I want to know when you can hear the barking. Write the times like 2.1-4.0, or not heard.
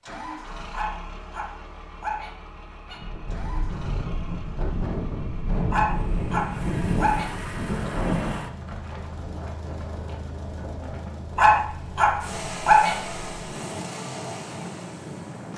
0.7-3.0, 5.7-7.3, 11.3-12.9.